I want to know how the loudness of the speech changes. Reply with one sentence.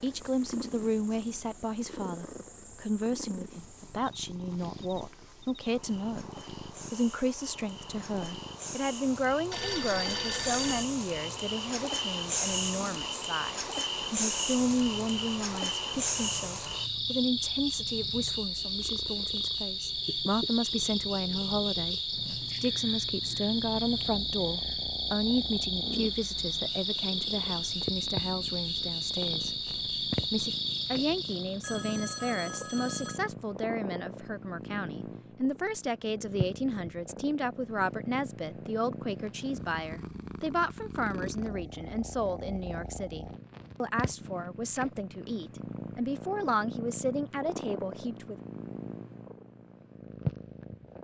The volume of the speech stays about the same.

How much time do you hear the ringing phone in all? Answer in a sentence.
The ringing phone can be heard for 3 seconds in total.